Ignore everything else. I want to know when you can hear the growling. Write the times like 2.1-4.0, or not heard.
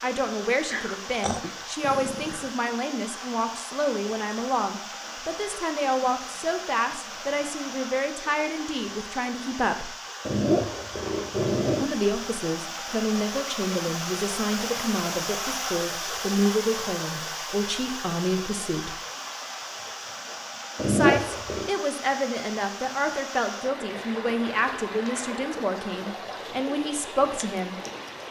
0.7-2.5, 10.2-11.9, 20.8-21.7.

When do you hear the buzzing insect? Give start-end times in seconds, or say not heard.
not heard.